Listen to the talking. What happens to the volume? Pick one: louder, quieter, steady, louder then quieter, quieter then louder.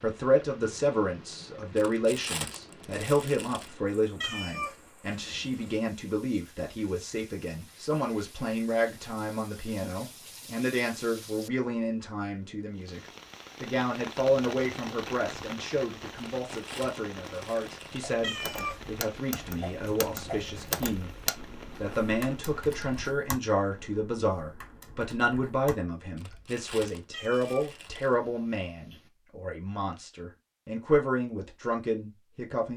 steady.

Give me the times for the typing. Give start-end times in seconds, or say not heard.
18.0-26.6.